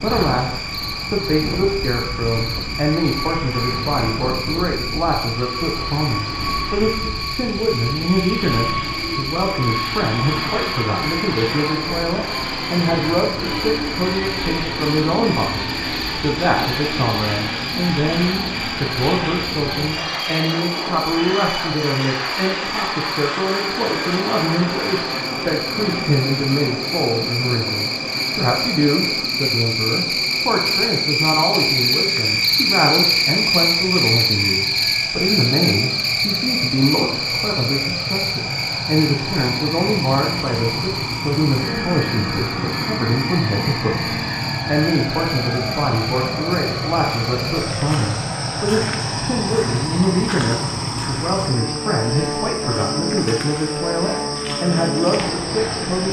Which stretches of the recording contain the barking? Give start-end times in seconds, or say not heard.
not heard.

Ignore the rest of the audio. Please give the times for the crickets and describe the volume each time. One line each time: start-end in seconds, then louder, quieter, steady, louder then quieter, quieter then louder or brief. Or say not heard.
0.0-56.0 louder then quieter.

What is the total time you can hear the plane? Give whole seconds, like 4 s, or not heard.
56 s.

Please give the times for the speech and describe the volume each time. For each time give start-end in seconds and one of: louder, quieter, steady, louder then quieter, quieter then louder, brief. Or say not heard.
0.0-56.0 steady.